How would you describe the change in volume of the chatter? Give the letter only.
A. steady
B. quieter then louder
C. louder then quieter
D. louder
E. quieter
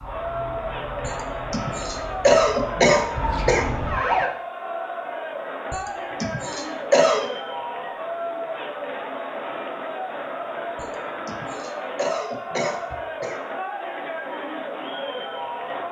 A.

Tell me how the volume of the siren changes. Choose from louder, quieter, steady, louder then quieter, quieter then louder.
louder.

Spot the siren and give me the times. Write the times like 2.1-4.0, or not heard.
0.0-4.3.